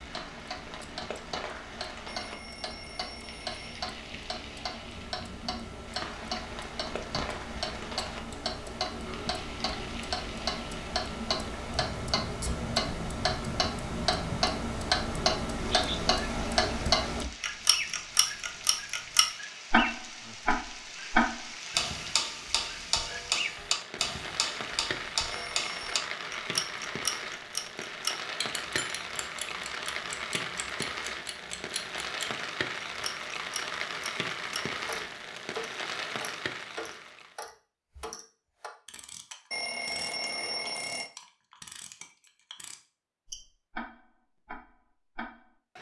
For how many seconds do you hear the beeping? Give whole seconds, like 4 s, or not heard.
4 s.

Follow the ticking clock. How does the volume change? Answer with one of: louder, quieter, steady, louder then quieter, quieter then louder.
louder then quieter.